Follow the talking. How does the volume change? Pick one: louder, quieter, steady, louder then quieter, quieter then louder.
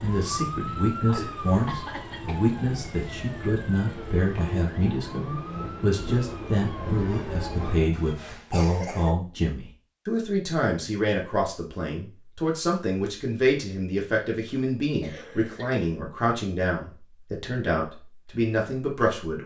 steady.